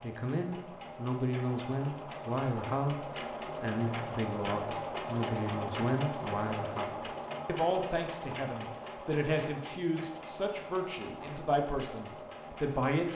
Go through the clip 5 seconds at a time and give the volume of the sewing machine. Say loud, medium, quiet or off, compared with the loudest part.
loud, loud, medium.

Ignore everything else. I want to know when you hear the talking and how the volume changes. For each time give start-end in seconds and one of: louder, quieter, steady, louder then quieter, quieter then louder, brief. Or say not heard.
0.0-13.1 steady.